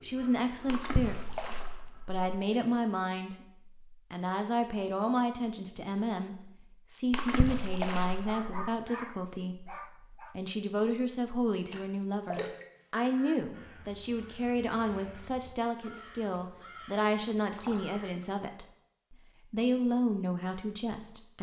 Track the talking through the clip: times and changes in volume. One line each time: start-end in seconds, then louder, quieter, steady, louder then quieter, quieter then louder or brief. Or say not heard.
0.0-21.3 steady.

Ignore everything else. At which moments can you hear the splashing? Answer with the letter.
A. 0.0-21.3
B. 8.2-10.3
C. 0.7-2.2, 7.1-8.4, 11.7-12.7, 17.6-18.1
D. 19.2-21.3
C.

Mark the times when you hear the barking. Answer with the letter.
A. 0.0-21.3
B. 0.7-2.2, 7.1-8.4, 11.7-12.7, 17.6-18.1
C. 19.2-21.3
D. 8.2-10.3
D.